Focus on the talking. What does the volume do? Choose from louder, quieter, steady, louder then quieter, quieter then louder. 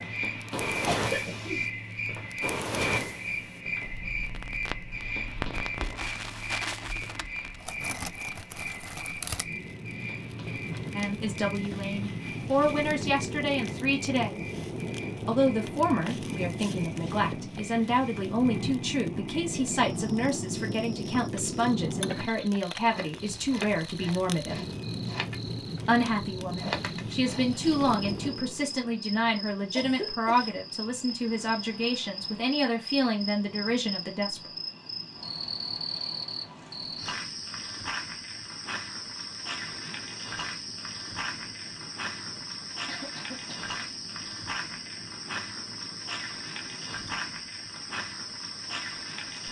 steady.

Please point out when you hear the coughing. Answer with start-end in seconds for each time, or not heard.
0.8-1.6, 29.8-30.6, 42.9-43.7.